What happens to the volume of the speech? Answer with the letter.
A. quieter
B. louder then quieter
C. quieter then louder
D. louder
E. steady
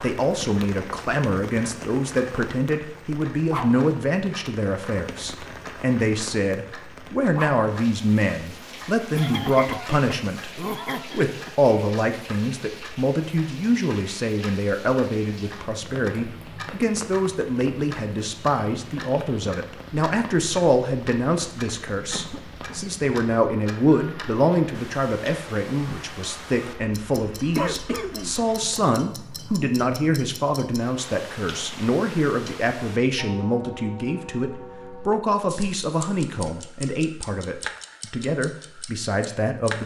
E.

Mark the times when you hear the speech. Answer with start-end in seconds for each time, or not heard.
0.0-39.8.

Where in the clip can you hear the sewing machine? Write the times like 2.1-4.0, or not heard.
not heard.